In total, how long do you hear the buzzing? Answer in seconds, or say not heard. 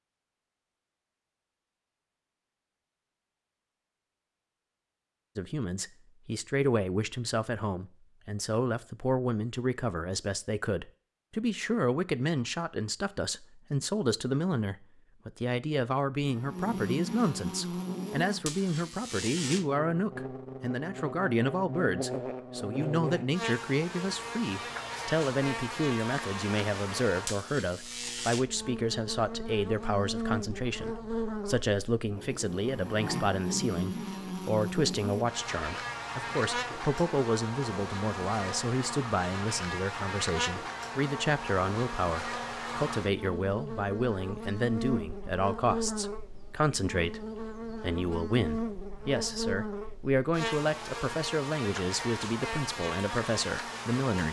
38 s.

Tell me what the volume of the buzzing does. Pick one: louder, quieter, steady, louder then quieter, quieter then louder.
steady.